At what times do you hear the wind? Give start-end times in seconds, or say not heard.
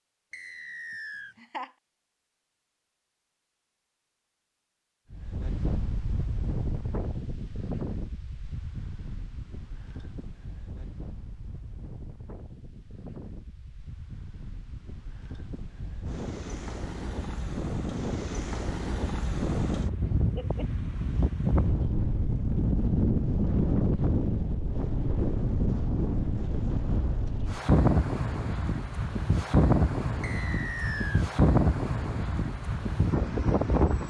5.1-34.0.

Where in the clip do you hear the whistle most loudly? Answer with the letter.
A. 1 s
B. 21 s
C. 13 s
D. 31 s
D.